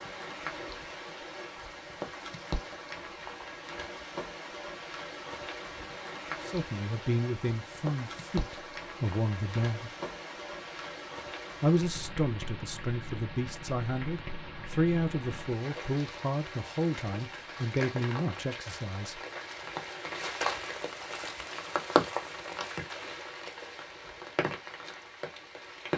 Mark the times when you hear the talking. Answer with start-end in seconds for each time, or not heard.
6.5-9.9, 11.6-19.2.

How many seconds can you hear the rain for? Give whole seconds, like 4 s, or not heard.
26 s.